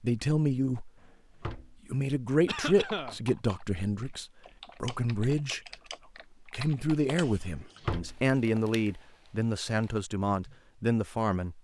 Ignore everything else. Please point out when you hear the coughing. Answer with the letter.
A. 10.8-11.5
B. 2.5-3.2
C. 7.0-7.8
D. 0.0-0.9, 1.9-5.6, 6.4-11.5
B.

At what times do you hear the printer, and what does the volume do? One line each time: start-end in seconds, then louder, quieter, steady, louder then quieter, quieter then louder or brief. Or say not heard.
not heard.